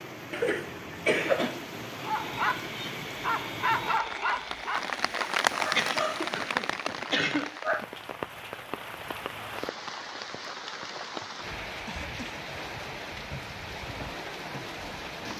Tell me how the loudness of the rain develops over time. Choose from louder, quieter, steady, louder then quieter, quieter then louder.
louder then quieter.